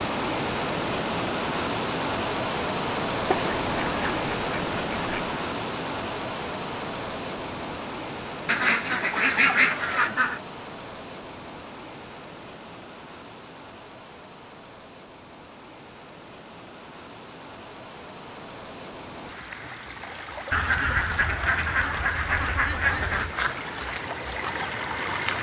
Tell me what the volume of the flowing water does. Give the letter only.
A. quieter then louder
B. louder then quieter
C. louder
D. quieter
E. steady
A.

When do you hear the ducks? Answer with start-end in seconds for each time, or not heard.
3.3-5.4, 8.4-10.4, 20.5-23.4.